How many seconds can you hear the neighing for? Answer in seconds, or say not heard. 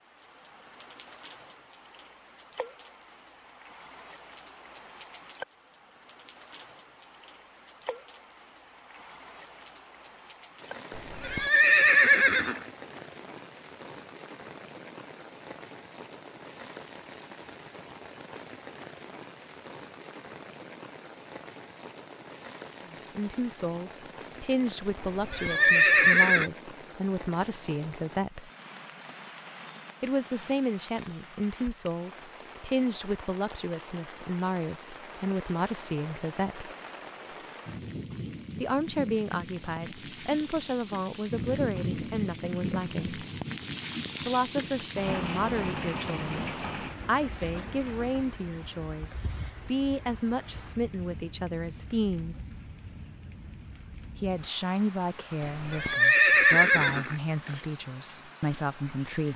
5 s.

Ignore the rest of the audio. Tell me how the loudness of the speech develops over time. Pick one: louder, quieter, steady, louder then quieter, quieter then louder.
steady.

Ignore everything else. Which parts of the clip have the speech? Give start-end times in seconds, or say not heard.
22.9-28.5, 30.0-36.7, 38.6-43.2, 44.2-52.4, 54.1-59.3.